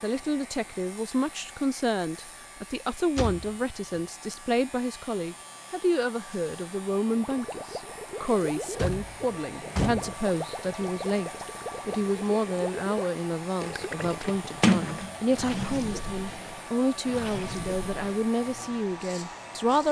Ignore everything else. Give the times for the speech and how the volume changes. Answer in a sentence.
You can hear the speech from 0.0 to 19.8 s, at a steady volume.